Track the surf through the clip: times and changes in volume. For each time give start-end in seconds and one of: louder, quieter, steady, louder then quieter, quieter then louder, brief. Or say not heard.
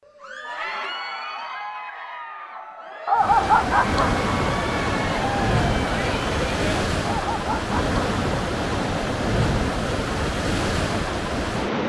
3.1-11.8 steady.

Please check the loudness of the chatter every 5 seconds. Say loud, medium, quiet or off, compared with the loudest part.
loud, loud, off.